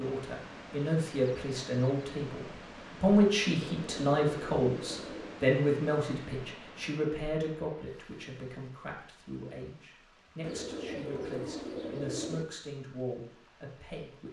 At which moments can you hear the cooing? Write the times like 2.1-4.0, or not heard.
3.5-5.4, 10.4-12.4.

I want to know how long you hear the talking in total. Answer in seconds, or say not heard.
14 s.